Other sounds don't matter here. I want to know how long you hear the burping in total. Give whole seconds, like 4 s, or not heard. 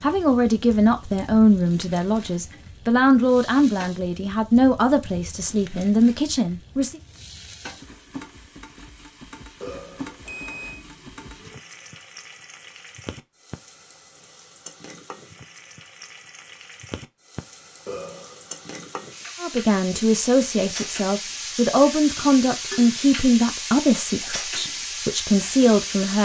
3 s.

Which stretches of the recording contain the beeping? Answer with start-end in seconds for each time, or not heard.
10.2-10.8.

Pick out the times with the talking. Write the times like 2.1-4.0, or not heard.
0.0-7.0, 19.4-26.2.